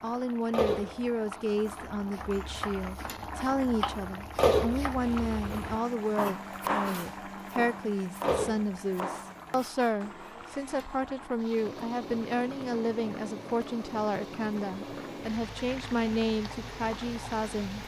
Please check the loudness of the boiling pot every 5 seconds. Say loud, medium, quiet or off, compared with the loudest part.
loud, medium, medium, medium.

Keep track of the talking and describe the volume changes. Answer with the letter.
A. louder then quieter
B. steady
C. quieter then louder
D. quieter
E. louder
B.